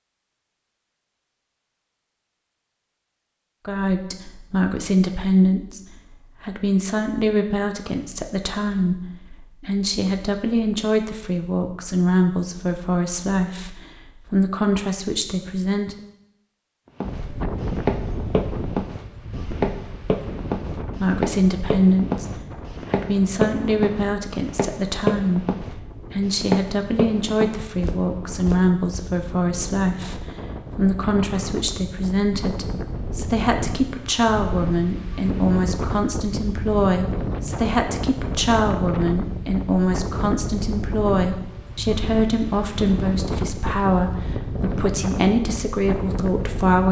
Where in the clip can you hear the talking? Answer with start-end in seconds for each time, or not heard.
3.6-15.9, 21.0-46.8.